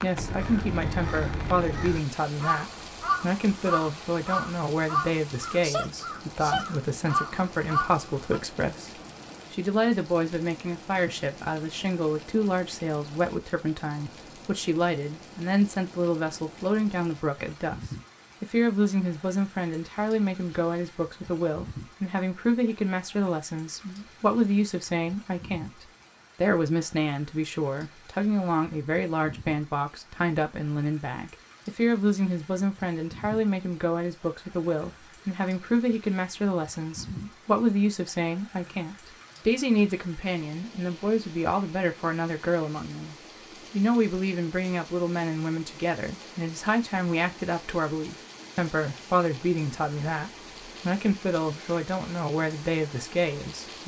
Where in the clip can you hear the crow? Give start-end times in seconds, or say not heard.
0.1-8.4.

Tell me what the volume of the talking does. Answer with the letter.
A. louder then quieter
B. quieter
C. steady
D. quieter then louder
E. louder
C.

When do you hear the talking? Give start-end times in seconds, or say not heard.
0.0-53.8.